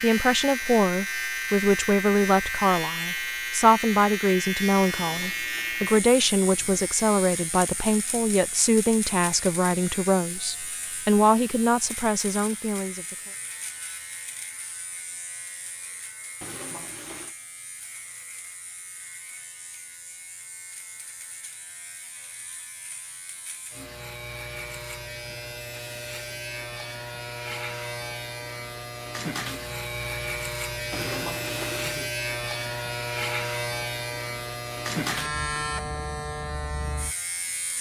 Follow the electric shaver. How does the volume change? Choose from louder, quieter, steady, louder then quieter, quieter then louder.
quieter then louder.